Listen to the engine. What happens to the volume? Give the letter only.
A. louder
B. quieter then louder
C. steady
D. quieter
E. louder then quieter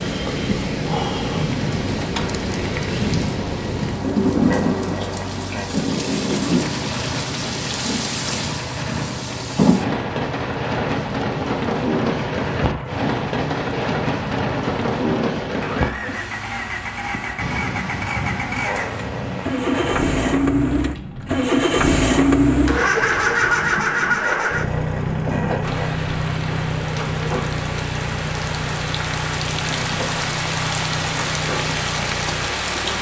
E.